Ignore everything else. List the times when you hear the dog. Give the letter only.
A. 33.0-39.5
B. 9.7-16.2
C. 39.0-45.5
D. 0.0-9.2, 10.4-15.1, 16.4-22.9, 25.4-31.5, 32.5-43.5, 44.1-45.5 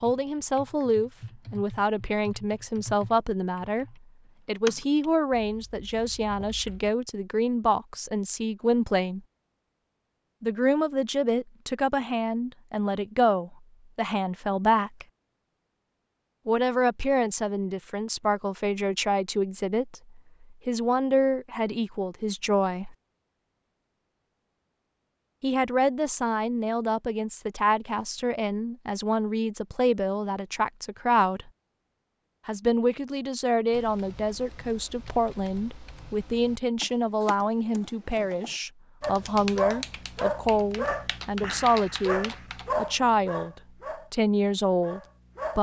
C.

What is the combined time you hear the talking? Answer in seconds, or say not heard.
39 s.